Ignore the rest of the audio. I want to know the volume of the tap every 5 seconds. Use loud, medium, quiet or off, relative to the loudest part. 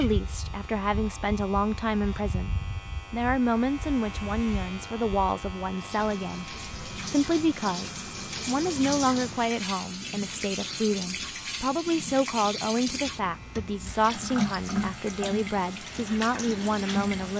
off, loud, loud, loud.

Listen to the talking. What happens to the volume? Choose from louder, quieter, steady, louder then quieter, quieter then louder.
steady.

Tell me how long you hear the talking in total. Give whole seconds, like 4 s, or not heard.
17 s.